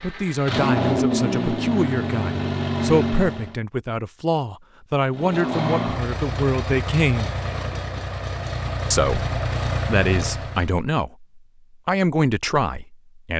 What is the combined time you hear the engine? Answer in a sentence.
The engine can be heard for 9 seconds in total.